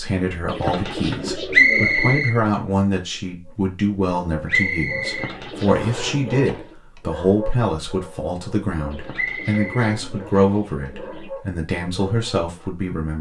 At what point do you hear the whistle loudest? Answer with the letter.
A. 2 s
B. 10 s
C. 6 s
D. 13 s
A.